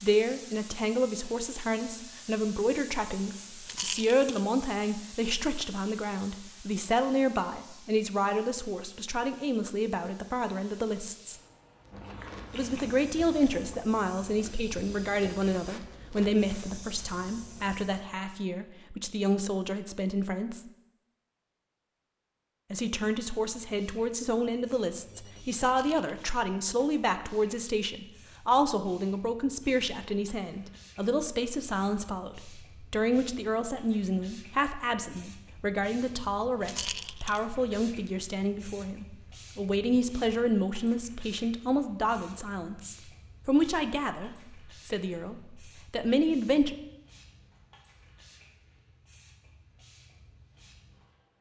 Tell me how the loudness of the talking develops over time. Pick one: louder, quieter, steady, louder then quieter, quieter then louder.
steady.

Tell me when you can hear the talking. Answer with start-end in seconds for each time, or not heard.
0.0-11.3, 12.5-20.6, 22.7-46.8.